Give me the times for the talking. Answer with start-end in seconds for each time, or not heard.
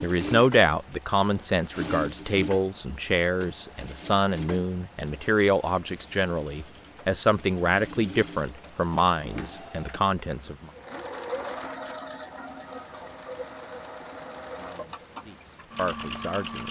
0.0-10.7, 14.7-16.6.